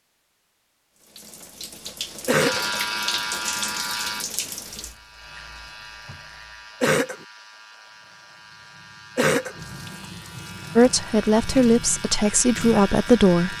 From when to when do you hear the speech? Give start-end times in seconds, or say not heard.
10.8-13.5.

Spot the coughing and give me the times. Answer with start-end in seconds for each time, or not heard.
2.2-2.7, 6.8-7.2, 9.2-9.6.